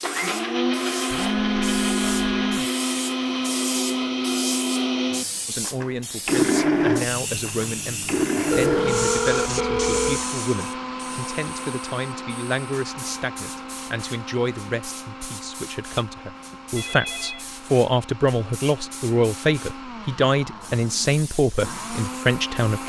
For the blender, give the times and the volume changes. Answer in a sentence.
You can hear the blender from 0.0 to 22.8 s, getting quieter.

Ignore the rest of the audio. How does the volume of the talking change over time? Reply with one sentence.
The loudness of the talking goes up.